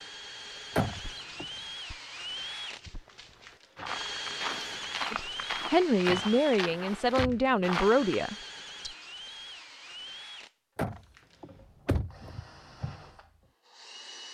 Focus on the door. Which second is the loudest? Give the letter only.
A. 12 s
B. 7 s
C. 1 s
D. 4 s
C.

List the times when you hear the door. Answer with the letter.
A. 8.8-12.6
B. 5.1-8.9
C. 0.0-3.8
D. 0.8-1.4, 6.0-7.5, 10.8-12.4
D.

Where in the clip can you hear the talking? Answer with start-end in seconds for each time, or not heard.
5.1-8.9.